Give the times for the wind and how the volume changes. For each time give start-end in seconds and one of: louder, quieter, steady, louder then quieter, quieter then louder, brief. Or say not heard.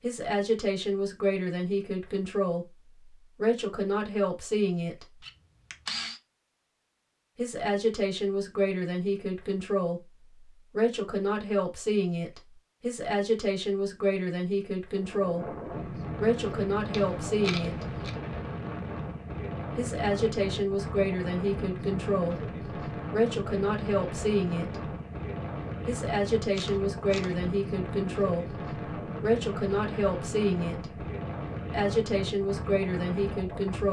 14.9-33.8 steady.